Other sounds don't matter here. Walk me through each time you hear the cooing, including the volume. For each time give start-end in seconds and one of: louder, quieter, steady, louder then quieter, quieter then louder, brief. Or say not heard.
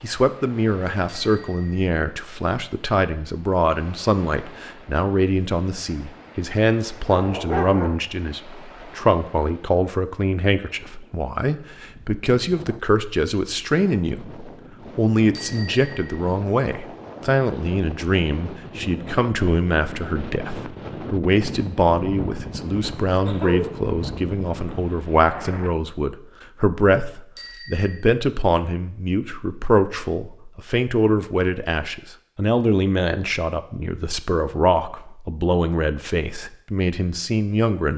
not heard.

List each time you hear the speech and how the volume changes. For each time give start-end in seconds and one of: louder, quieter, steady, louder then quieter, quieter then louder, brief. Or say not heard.
0.0-37.9 steady.